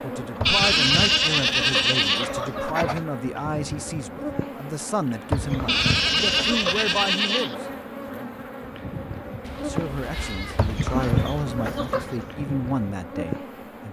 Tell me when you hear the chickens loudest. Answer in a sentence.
The volume of the chickens peaks at 11 seconds.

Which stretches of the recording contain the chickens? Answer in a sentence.
You can hear the chickens from 0.4 to 3.0 s, from 5.3 to 7.0 s and from 10.6 to 12.2 s.